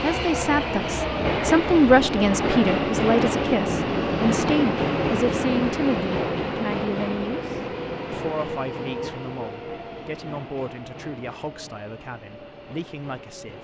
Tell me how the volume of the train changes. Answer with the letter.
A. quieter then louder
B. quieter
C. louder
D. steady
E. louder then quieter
B.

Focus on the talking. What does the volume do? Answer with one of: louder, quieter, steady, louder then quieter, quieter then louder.
quieter.